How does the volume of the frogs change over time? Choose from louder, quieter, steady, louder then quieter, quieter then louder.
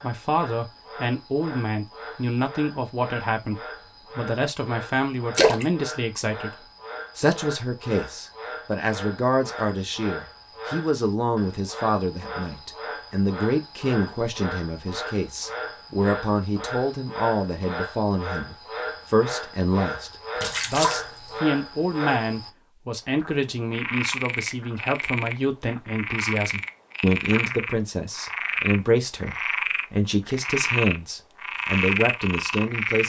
louder.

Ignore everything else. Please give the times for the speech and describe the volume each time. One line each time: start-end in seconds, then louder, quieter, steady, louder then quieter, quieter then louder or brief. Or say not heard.
0.0-33.0 steady.